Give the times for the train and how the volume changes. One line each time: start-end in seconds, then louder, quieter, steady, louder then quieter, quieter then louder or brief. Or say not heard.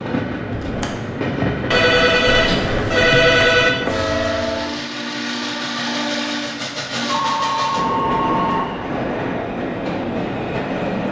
0.0-11.0 steady.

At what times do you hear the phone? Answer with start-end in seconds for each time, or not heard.
1.7-3.7, 7.0-8.8.